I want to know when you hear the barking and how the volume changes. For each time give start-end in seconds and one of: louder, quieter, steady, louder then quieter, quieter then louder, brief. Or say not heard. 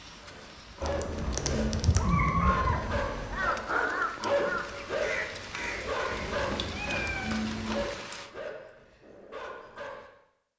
0.1-10.1 louder then quieter.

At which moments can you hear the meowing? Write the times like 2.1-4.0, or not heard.
0.8-3.5, 6.1-7.8.